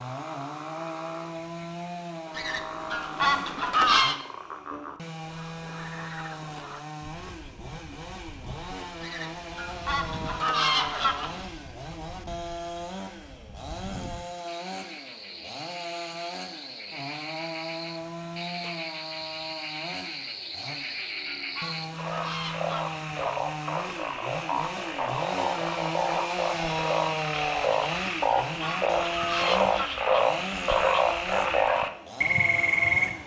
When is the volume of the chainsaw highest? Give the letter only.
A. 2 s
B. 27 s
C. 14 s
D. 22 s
B.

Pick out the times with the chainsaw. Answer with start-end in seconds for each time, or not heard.
0.0-33.2.